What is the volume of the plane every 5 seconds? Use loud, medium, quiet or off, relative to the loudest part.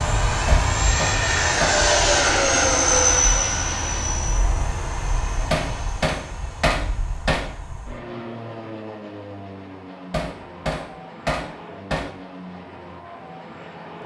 loud, quiet, quiet.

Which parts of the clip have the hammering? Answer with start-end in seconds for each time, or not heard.
0.5-1.8, 5.5-7.5, 10.1-12.1.